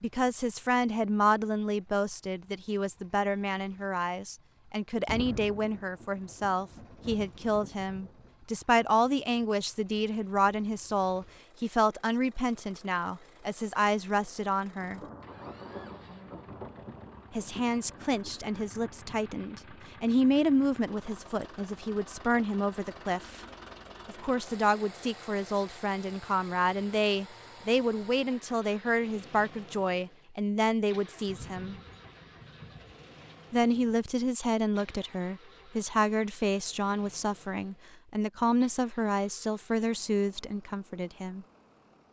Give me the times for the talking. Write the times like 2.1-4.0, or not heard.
0.0-15.0, 17.3-23.4, 24.1-31.8, 33.5-41.5.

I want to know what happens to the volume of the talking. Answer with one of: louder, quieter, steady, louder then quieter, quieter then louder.
steady.